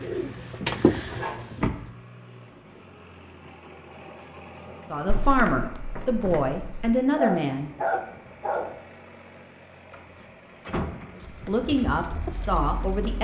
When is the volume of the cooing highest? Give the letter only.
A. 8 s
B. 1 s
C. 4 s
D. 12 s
B.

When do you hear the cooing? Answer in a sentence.
The cooing can be heard from 0.0 to 1.9 s and from 11.2 to 13.1 s.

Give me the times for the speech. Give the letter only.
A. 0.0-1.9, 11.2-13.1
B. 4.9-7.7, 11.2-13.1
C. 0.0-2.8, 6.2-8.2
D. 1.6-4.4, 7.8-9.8
B.